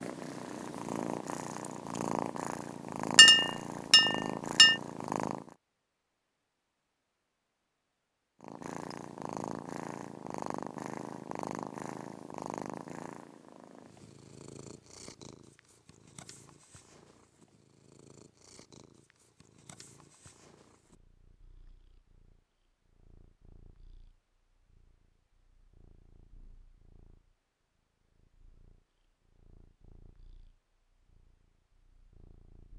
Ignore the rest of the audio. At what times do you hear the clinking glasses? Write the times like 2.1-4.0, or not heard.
3.1-4.8.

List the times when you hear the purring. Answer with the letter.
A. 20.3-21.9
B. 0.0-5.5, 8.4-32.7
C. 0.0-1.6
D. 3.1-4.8
B.